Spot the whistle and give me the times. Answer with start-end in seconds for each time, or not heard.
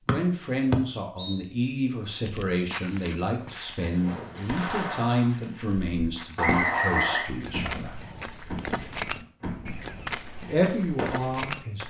0.1-1.4, 6.3-7.2.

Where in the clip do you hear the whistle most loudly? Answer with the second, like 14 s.
7 s.